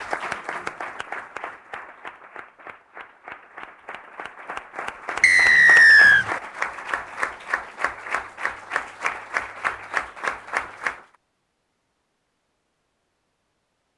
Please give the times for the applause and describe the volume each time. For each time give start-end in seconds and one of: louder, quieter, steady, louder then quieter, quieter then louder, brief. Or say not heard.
0.0-11.1 quieter then louder.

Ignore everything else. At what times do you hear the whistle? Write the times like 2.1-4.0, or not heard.
5.2-6.2.